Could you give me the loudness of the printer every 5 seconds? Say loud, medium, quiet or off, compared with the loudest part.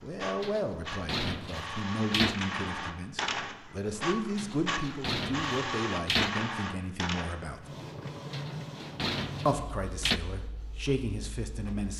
loud, loud, quiet.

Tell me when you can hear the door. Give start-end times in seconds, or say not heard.
0.4-2.4, 4.3-6.3, 8.3-10.2.